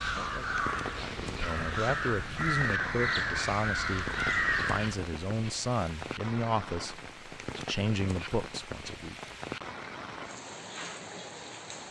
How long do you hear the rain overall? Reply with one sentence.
The rain can be heard for 12 seconds in total.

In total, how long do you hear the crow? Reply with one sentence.
You can hear the crow for 5 seconds altogether.